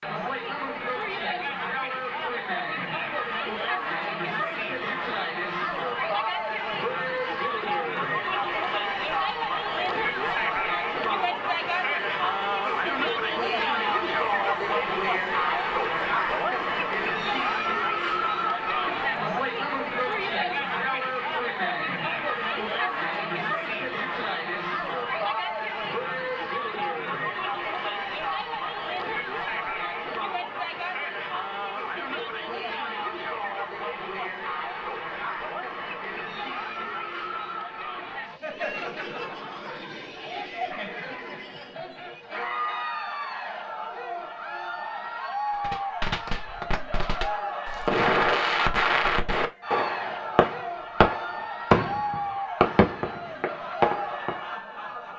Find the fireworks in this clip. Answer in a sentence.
You can hear the fireworks from 45.6 to 54.4 s.